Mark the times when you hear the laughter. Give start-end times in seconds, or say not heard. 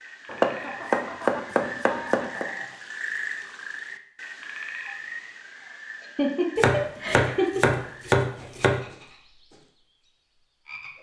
0.5-2.8, 6.0-7.7.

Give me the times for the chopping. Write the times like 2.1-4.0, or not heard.
0.2-2.5, 6.5-8.8.